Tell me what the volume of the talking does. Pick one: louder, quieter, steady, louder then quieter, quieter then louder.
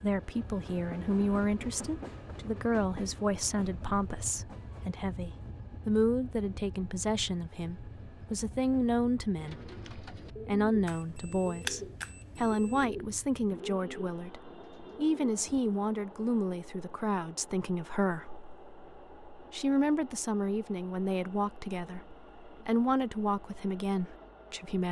steady.